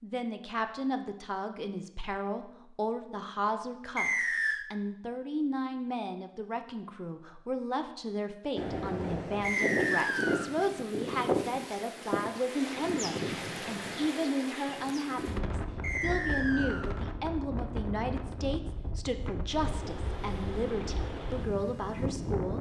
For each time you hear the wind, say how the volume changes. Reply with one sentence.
The wind can be heard from 8.6 to 22.5 s, getting quieter.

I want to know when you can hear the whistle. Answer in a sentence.
You can hear the whistle from 4.0 to 4.7 s, from 9.4 to 10.5 s and from 15.8 to 16.9 s.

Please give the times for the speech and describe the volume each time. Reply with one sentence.
The speech can be heard from 0.0 to 22.5 s, at a steady volume.